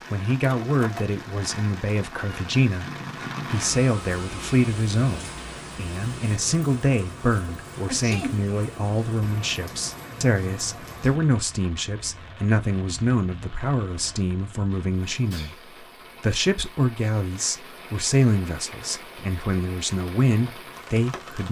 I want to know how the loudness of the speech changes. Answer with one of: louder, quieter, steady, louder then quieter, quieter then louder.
steady.